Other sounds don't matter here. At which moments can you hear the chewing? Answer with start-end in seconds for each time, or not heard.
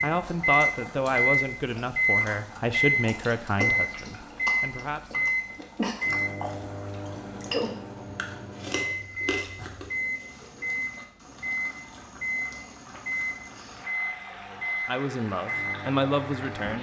1.5-9.9.